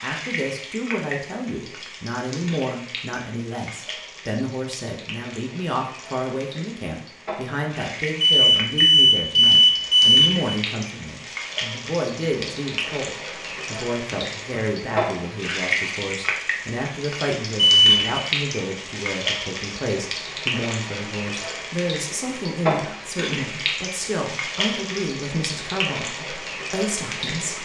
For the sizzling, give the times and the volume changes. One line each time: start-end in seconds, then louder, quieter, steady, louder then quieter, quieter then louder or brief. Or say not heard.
0.0-27.6 louder.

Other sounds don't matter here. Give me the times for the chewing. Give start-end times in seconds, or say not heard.
not heard.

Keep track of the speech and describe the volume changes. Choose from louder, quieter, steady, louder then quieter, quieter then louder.
steady.